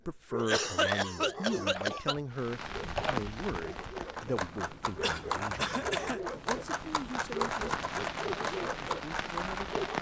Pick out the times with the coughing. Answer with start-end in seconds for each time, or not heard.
0.3-2.1, 5.0-6.2.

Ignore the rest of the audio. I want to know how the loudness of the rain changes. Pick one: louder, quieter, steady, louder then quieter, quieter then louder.
quieter then louder.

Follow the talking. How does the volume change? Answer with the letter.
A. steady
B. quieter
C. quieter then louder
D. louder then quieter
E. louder
B.